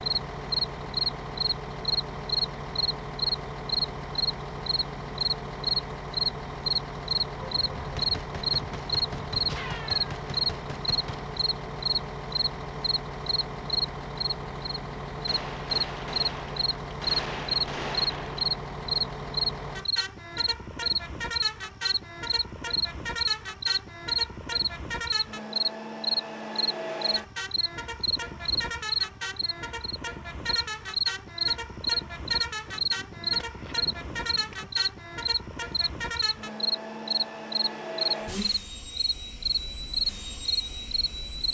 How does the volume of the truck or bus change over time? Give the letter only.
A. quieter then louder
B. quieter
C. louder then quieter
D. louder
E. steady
E.